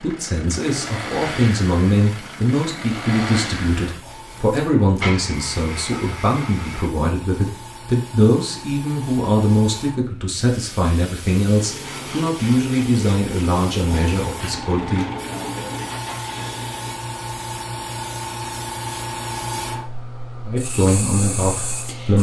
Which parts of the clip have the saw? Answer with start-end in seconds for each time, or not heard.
not heard.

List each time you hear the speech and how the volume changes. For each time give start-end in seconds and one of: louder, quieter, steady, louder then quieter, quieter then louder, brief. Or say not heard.
0.0-15.1 steady
20.4-22.1 brief.